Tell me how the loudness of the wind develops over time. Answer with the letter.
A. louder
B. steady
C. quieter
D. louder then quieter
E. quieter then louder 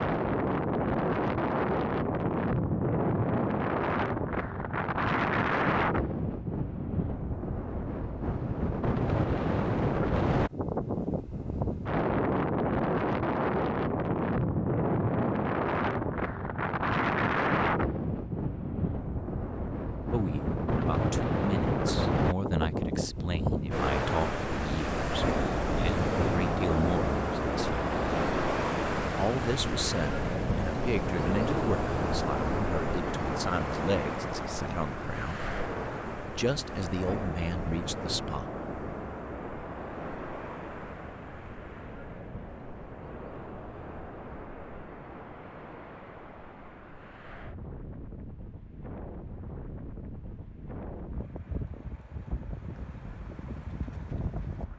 C.